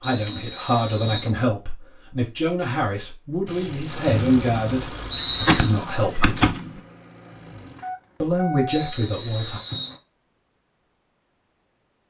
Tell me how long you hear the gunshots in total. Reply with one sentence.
The gunshots can be heard for 2 seconds in total.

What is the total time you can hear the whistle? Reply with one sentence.
You can hear the whistle for 4 seconds altogether.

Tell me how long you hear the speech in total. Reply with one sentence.
You can hear the speech for 8 seconds altogether.